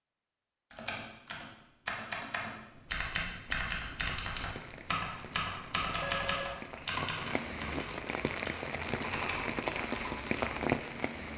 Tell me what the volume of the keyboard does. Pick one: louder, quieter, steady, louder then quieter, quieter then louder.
louder then quieter.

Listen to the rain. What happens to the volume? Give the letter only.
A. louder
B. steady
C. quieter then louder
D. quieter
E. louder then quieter
A.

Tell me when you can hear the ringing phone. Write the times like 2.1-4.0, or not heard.
5.9-6.5.